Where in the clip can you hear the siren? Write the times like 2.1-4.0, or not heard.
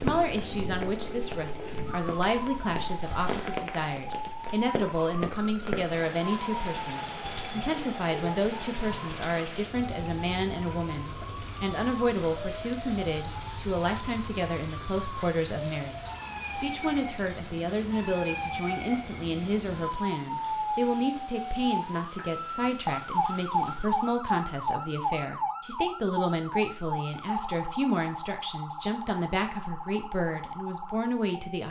0.2-31.6.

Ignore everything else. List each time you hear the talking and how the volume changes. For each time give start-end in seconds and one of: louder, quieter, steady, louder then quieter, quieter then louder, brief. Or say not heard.
0.0-31.6 steady.